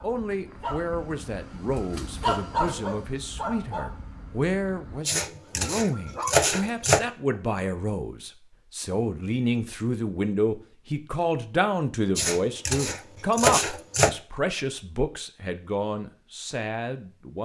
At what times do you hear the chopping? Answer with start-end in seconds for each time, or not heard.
5.0-7.0, 12.2-14.1.